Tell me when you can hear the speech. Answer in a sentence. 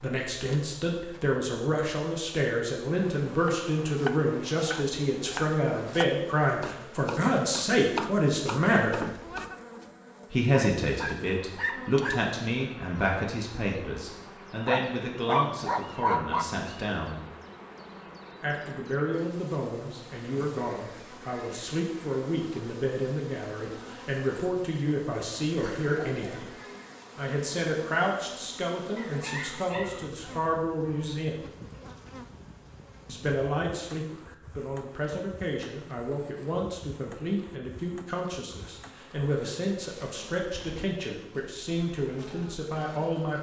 The speech can be heard from 0.0 to 9.1 s, from 10.3 to 17.2 s, from 18.4 to 26.5 s, from 27.1 to 31.4 s and from 33.0 to 43.3 s.